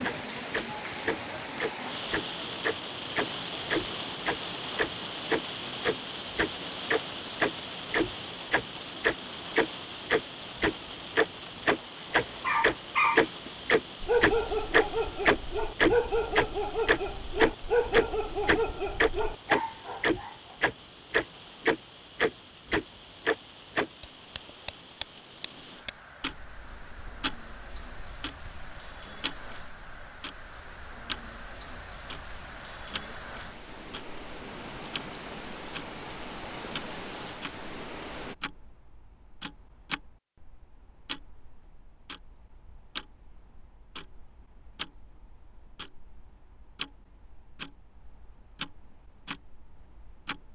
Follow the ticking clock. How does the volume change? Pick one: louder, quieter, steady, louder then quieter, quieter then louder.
quieter.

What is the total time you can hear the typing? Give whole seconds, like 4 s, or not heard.
not heard.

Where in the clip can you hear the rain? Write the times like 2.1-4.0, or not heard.
0.0-38.4.